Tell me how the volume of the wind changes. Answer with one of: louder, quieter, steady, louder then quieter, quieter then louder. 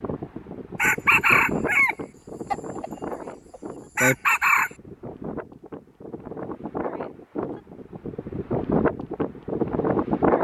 quieter then louder.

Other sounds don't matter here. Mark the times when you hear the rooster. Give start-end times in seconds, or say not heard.
0.8-4.7.